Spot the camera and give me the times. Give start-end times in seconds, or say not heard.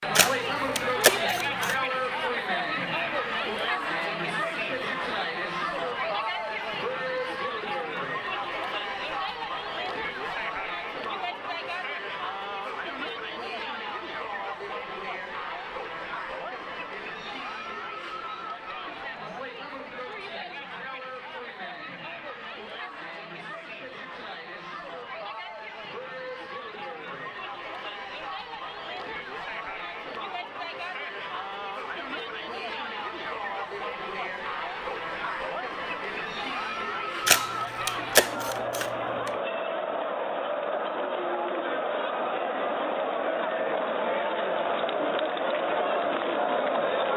0.1-1.8, 37.2-39.3.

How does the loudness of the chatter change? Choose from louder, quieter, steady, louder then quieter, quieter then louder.
quieter then louder.